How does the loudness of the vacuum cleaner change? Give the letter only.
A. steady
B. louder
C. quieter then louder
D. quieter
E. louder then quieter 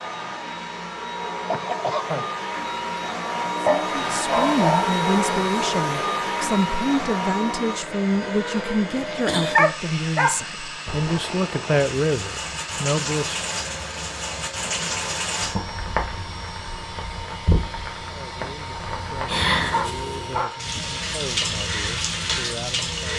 D.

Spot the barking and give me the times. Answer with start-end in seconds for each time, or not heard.
3.6-5.0, 9.6-10.4, 19.7-20.7.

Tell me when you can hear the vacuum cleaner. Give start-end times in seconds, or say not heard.
0.0-23.1.